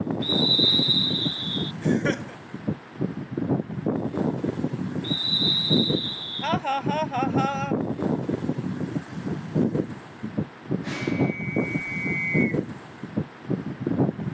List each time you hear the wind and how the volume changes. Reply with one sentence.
You can hear the wind from 0.0 to 14.3 s, at a steady volume.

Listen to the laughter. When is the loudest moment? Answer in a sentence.
The loudest moment of the laughter is at 7 seconds.